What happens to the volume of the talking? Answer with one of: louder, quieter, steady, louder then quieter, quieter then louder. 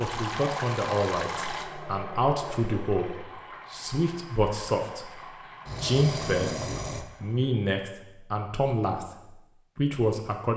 steady.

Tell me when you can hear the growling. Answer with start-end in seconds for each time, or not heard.
1.4-3.2, 5.7-7.0.